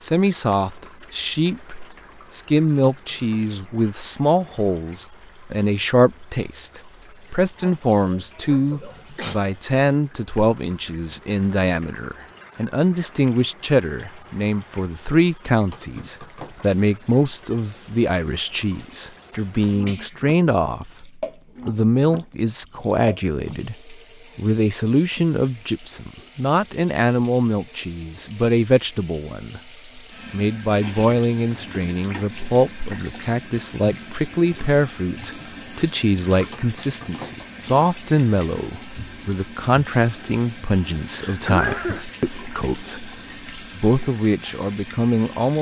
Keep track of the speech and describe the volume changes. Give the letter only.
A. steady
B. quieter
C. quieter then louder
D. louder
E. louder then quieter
A.